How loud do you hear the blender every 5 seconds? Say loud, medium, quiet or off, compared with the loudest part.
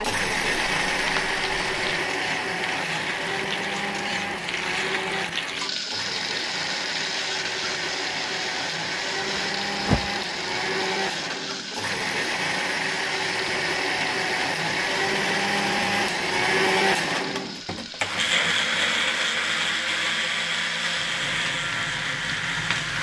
loud, medium, loud, loud, loud.